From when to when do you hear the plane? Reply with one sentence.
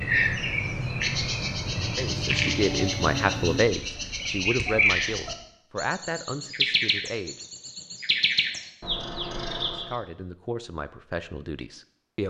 The plane can be heard from 0.0 to 3.6 s.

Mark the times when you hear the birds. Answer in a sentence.
You can hear the birds from 0.0 to 9.9 s.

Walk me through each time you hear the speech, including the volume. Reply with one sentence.
The speech can be heard from 1.9 to 7.4 s, getting quieter; and briefly from 9.7 to 12.2 s.